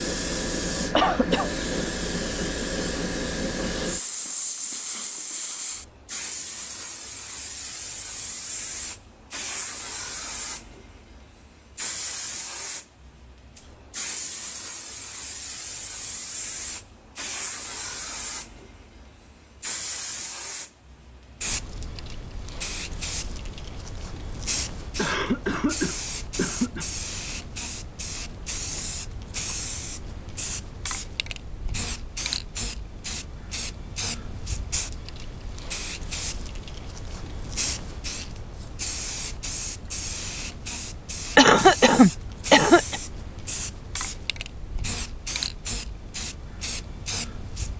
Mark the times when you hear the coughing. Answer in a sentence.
You can hear the coughing from 0.9 to 1.6 s, from 24.9 to 26.9 s and from 41.4 to 43.0 s.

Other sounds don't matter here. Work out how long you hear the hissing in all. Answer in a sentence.
The hissing can be heard for 48 seconds in total.